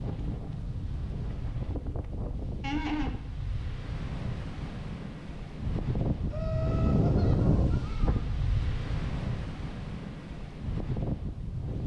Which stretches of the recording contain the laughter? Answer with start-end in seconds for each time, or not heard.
2.6-3.1, 6.3-8.2.